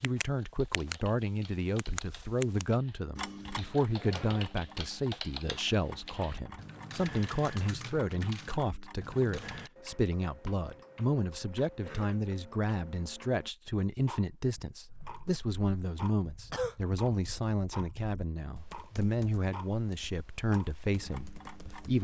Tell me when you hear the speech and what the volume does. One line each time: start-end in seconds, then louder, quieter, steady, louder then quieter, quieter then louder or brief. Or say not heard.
0.0-21.9 steady.